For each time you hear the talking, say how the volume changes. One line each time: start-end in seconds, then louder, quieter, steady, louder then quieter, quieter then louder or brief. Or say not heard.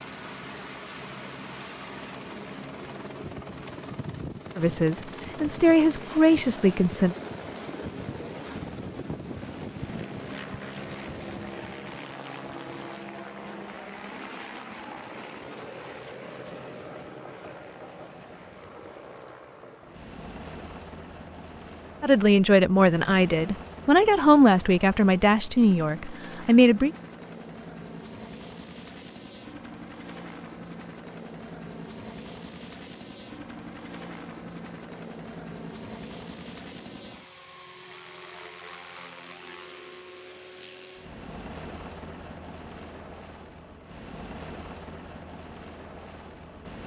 4.5-7.2 brief
22.0-26.9 quieter.